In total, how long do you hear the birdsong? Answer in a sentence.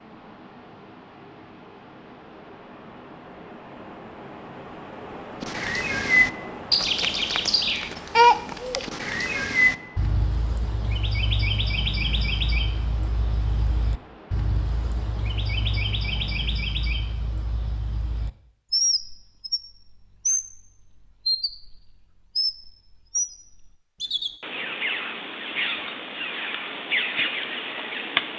You can hear the birdsong for 23 seconds altogether.